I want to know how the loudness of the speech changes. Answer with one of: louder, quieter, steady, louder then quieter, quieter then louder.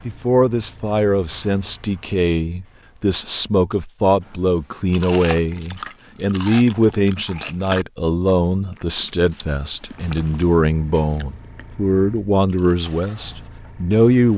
steady.